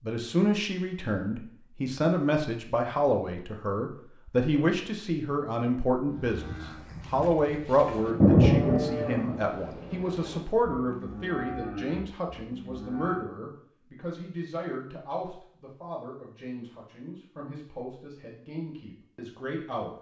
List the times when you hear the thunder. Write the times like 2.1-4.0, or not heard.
6.5-7.2, 8.0-9.4.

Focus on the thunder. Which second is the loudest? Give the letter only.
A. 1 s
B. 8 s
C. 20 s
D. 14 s
B.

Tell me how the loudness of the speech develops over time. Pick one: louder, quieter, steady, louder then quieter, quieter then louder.
quieter.